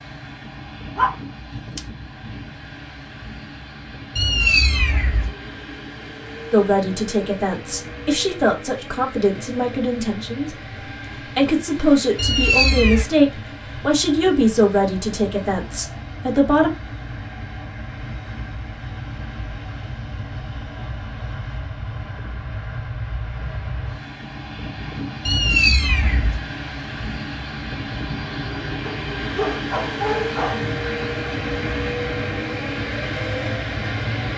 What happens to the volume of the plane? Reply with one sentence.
The volume of the plane goes up.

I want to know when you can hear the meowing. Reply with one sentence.
You can hear the meowing from 4.2 to 5.3 s, from 12.2 to 13.1 s and from 25.2 to 26.4 s.